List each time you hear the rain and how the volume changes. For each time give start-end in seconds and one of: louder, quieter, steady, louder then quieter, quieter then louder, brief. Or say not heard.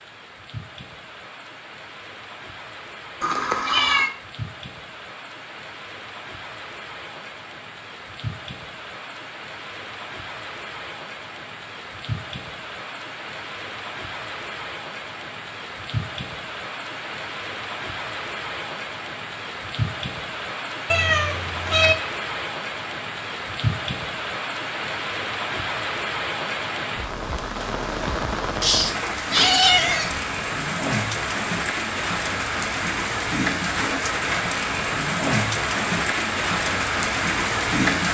0.0-38.1 louder.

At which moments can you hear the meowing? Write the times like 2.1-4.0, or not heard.
3.2-4.1, 20.9-21.9, 28.6-30.2.